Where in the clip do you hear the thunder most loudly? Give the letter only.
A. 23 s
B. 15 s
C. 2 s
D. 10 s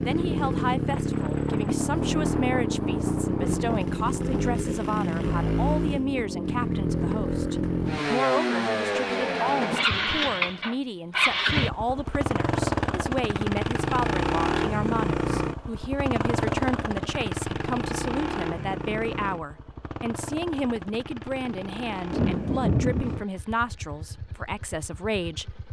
A.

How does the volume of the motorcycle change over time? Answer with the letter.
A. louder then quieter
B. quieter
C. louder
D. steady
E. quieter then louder
B.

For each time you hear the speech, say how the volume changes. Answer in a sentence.
You can hear the speech from 0.0 to 25.6 s, at a steady volume.